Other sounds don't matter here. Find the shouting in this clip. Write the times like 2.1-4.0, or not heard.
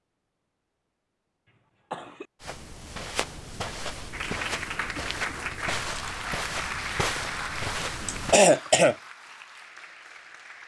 not heard.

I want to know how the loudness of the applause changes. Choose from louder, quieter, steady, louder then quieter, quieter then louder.
quieter.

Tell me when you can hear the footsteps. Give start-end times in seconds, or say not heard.
2.4-8.3.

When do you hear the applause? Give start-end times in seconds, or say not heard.
4.1-10.6.